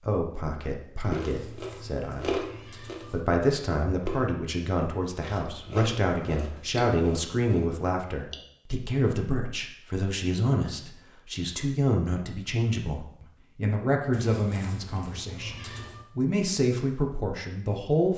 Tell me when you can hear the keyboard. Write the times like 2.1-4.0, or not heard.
not heard.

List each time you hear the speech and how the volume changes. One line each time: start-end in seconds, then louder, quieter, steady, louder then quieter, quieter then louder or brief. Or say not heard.
0.0-2.5 brief
3.1-18.1 steady.